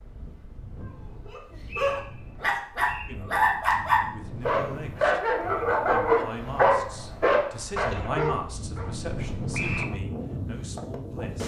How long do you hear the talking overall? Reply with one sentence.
You can hear the talking for 8 seconds altogether.